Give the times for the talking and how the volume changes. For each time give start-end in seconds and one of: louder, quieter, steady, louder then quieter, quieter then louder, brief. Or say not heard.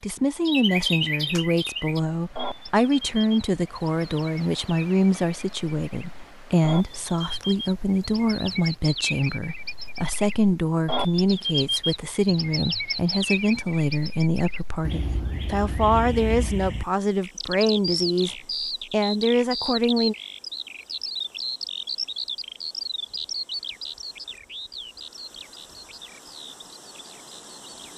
0.0-20.1 steady.